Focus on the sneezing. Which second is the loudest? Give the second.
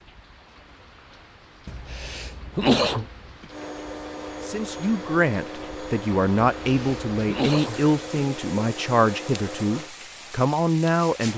3 s.